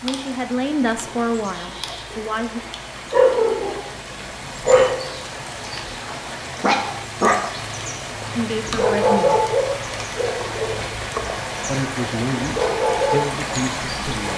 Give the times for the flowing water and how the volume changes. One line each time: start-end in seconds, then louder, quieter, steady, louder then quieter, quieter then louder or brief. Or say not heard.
0.0-14.3 louder.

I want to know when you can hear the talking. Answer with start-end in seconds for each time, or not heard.
0.0-2.6, 8.2-9.5, 11.7-14.3.